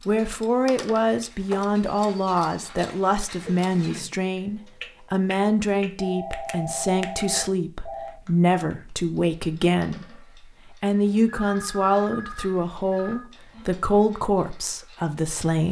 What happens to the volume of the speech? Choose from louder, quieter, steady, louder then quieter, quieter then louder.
steady.